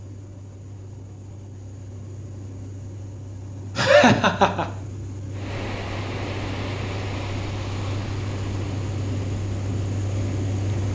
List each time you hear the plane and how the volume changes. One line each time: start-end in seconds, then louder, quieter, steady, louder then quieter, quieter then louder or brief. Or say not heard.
0.0-10.9 louder.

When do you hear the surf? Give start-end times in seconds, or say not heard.
5.3-10.9.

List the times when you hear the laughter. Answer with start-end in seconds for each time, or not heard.
3.8-4.7.